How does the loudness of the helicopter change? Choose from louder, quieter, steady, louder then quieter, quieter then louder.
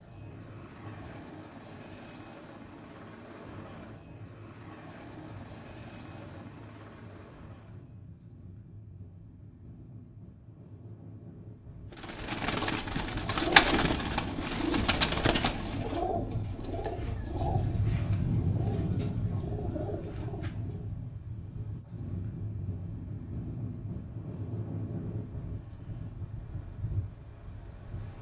steady.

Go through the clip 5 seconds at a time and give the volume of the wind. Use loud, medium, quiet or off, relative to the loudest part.
quiet, quiet, quiet, loud, medium, medium.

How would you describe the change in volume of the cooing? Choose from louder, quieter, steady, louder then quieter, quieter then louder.
quieter.